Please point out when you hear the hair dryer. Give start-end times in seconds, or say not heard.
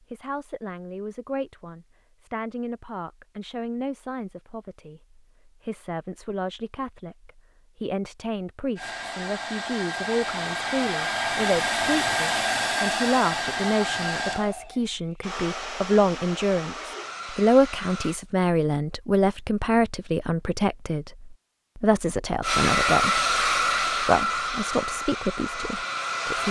8.8-18.2, 22.4-26.4.